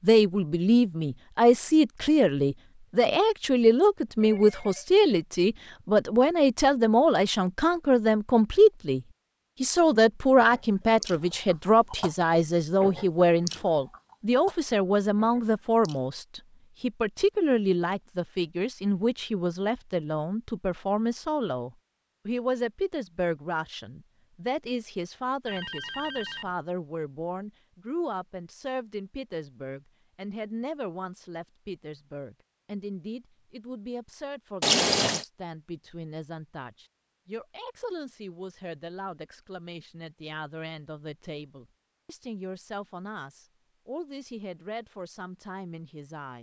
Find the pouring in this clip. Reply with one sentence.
You can hear the pouring from 34.6 to 35.2 s.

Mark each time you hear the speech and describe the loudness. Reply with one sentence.
The speech can be heard from 0.0 to 46.3 s, getting quieter.